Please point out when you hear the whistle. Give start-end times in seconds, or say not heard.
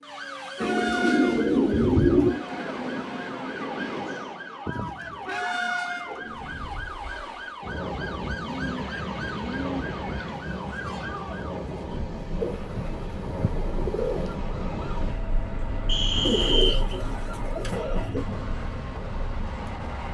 15.8-16.9.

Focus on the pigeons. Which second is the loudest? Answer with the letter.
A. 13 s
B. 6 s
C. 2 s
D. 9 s
C.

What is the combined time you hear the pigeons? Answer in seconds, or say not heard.
10 s.